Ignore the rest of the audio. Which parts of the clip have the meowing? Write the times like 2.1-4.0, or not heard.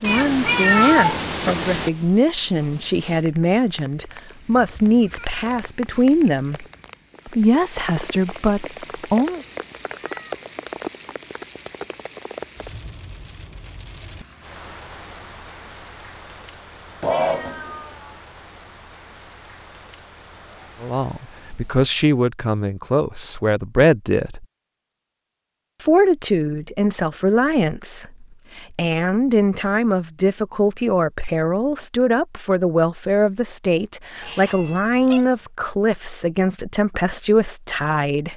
0.0-1.9, 17.0-18.1, 34.2-35.4.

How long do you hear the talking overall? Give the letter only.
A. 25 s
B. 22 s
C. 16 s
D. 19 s
A.